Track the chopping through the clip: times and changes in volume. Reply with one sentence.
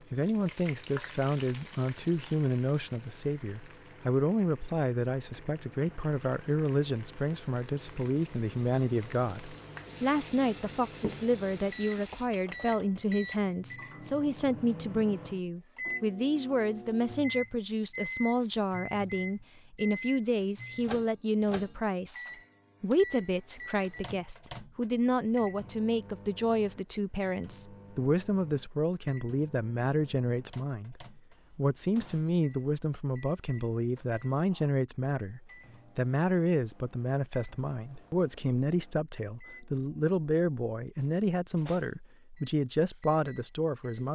You can't hear the chopping here.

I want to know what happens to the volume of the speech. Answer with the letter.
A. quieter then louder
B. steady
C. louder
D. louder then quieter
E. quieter
B.